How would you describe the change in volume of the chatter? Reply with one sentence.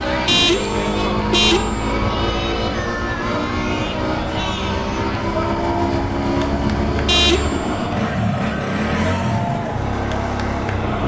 The volume of the chatter stays about the same.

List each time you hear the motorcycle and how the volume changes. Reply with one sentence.
You can hear the motorcycle from 0.0 to 11.0 s, at a steady volume.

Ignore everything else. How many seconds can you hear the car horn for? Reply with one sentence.
The car horn can be heard for 2 seconds in total.